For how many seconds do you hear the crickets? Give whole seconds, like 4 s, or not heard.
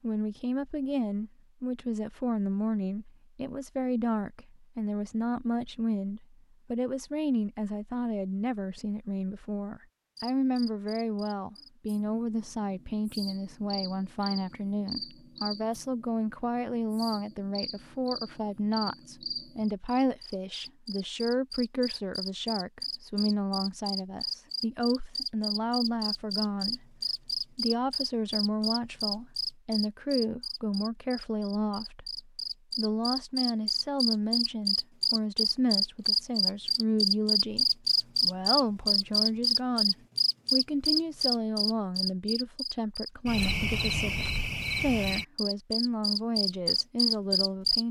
38 s.